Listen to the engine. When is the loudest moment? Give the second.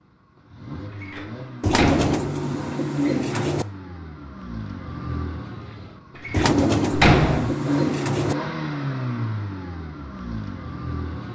9 s.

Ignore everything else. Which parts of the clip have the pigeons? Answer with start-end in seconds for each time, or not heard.
1.6-3.6, 6.3-8.3.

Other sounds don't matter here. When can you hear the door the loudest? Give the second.
7 s.